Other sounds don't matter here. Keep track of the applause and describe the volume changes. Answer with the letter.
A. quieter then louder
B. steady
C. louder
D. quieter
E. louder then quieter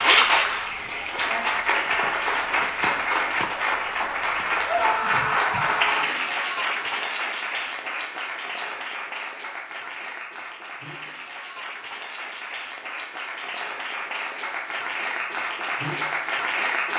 A.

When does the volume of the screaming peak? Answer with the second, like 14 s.
5 s.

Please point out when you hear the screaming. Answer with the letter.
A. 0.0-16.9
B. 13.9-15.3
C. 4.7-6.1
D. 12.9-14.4
C.